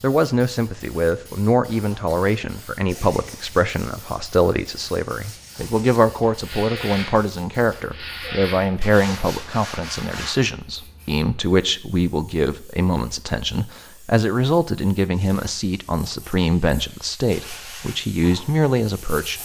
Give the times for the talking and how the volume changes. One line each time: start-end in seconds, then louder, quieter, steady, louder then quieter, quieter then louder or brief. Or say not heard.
0.0-19.4 steady.